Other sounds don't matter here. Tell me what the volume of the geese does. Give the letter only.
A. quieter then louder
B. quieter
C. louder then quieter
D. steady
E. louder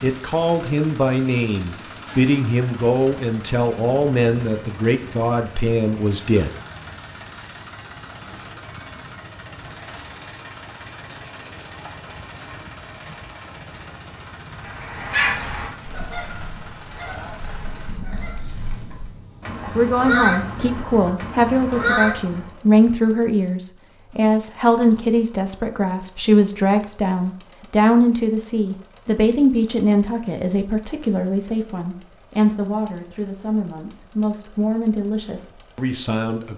A.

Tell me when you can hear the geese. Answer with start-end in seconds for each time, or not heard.
14.7-22.5.